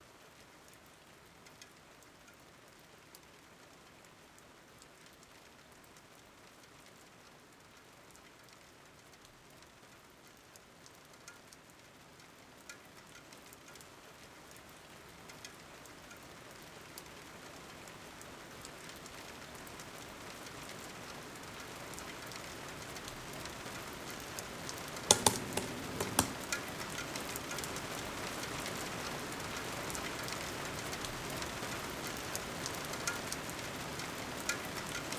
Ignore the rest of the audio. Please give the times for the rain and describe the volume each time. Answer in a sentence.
The rain can be heard from 0.0 to 35.1 s, getting louder.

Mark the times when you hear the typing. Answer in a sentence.
You can hear the typing from 25.1 to 26.4 s.